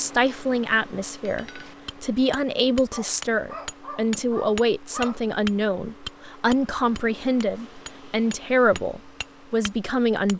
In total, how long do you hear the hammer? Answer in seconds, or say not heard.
9 s.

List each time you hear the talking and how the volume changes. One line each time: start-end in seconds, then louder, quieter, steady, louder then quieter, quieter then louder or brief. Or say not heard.
0.0-10.3 steady.